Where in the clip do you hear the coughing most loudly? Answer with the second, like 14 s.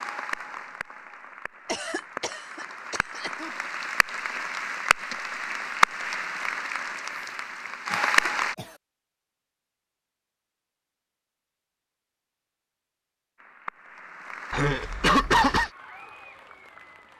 15 s.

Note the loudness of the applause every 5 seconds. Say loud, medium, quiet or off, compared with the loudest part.
medium, loud, quiet, quiet.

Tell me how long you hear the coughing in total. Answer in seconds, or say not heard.
4 s.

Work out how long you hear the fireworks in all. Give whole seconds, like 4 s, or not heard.
not heard.